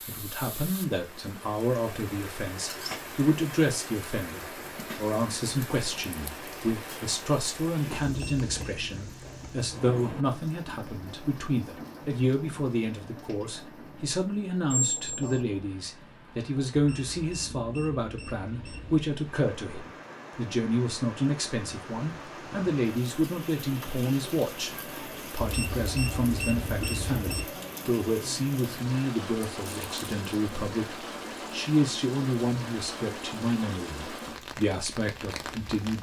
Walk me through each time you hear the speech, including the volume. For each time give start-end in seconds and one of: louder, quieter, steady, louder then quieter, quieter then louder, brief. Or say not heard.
0.1-35.9 steady.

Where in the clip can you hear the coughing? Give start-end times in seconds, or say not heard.
not heard.